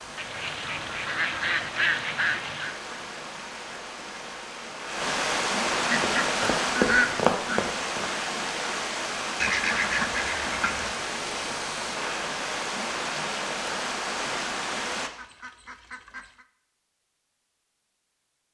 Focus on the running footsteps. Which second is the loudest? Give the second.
7 s.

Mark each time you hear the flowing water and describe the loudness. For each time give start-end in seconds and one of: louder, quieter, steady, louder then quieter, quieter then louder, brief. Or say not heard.
0.0-15.1 louder.